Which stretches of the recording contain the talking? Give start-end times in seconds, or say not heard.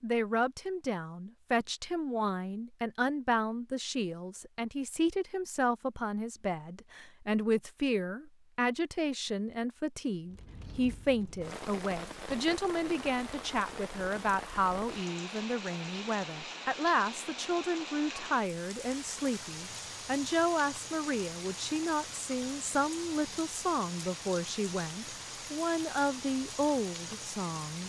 0.0-27.8.